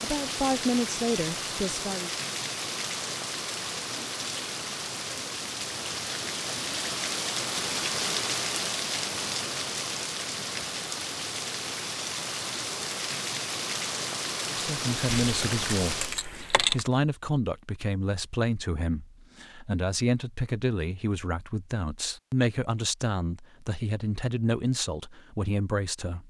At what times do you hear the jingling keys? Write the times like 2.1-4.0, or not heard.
15.1-16.9.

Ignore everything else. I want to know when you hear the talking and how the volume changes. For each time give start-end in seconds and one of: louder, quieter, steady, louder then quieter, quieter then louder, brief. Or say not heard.
0.0-2.1 brief
14.5-26.2 steady.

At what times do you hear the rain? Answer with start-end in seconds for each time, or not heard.
0.0-16.2.